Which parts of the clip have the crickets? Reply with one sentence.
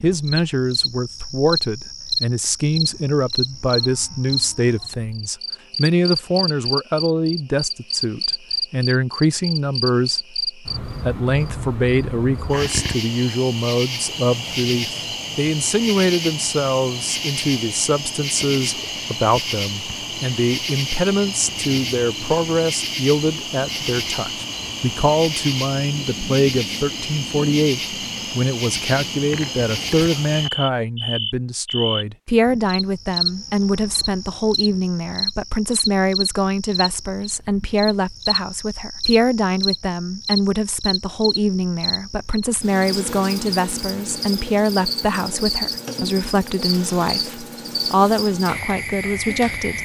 The crickets can be heard from 0.0 to 49.8 s.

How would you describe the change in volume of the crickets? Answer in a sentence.
The loudness of the crickets stays about the same.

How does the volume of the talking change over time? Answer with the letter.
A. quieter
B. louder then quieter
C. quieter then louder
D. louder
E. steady
E.